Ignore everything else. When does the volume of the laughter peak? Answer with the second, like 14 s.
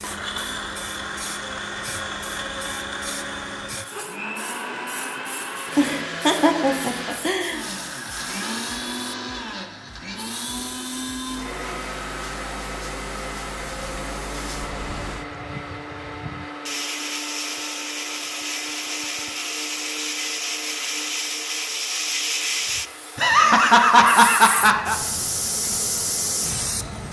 24 s.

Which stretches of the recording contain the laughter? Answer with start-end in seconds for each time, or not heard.
5.8-7.6, 23.1-24.9.